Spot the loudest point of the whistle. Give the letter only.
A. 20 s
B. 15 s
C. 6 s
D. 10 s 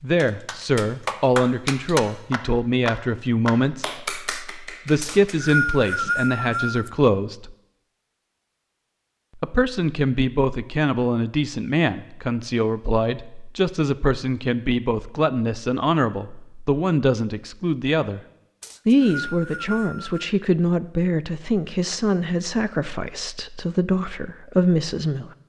C.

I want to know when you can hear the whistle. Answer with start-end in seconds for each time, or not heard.
5.0-6.9, 18.6-20.3.